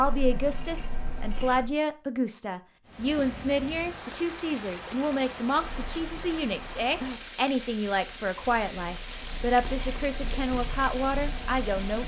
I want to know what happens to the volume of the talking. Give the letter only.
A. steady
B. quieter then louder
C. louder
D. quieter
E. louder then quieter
A.